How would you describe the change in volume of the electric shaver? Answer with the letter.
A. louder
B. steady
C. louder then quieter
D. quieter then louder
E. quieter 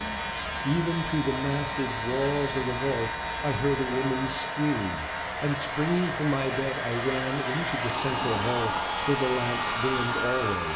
E.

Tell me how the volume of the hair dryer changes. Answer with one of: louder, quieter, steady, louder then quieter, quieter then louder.
louder.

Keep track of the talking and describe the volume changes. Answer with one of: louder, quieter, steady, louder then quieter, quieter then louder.
steady.